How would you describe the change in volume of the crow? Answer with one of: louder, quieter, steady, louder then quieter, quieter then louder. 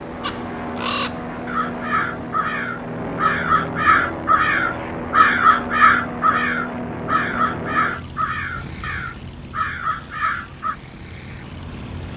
louder then quieter.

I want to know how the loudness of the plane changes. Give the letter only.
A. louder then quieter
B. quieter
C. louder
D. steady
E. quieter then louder
B.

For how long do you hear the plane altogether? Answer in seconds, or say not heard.
12 s.